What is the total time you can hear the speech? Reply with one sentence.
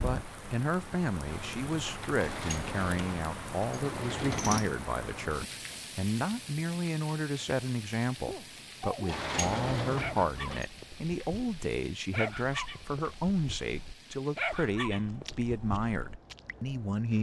The speech can be heard for 17 seconds in total.